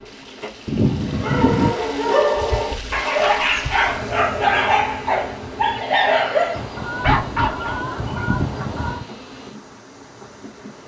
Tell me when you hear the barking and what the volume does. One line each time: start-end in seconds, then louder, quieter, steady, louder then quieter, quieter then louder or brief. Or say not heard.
0.8-7.8 steady.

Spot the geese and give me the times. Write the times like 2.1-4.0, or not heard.
0.7-1.7, 6.5-9.1.